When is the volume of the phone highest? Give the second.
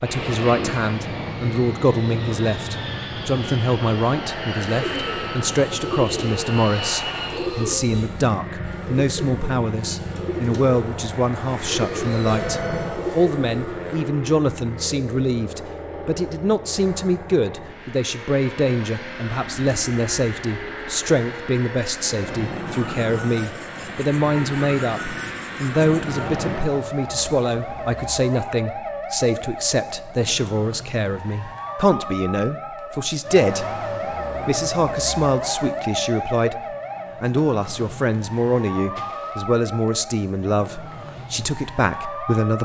13 s.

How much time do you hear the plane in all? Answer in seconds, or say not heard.
27 s.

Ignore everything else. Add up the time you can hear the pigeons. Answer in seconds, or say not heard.
9 s.